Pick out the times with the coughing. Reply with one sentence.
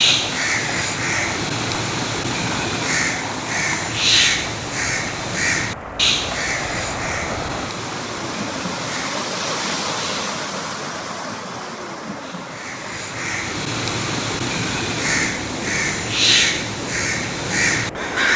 You can't hear the coughing here.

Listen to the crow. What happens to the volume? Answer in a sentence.
The loudness of the crow goes down, then up.